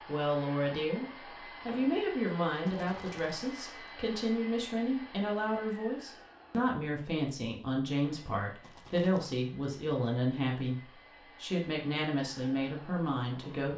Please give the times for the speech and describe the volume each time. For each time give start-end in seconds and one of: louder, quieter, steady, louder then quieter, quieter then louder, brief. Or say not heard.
0.1-13.7 steady.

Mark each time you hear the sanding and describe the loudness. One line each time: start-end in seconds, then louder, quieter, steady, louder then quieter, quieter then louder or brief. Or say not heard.
not heard.